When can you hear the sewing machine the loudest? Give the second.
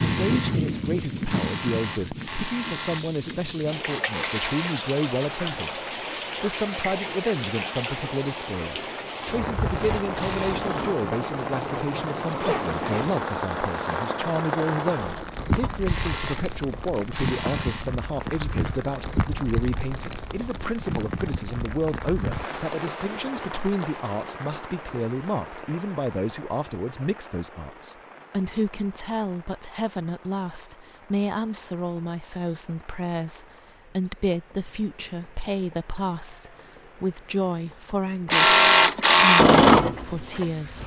39 s.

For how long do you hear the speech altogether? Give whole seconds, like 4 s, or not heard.
40 s.